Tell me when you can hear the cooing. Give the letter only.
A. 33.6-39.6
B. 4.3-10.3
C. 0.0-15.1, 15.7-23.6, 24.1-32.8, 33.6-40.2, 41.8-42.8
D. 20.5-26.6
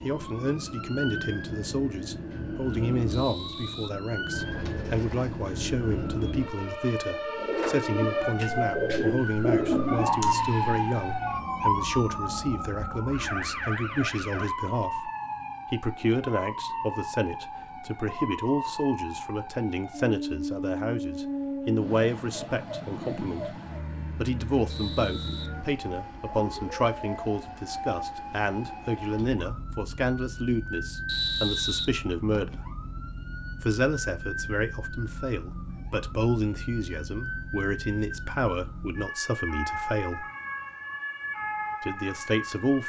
B.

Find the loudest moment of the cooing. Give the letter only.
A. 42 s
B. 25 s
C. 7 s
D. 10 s
D.